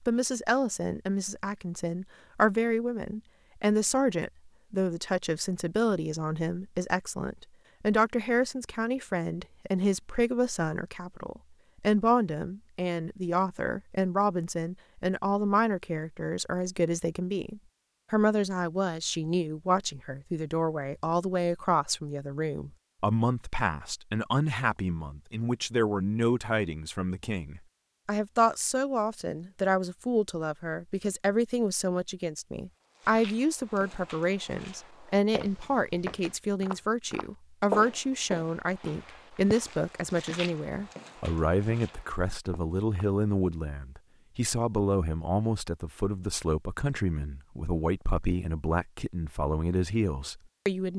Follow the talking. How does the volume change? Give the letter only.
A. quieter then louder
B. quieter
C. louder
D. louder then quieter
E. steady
E.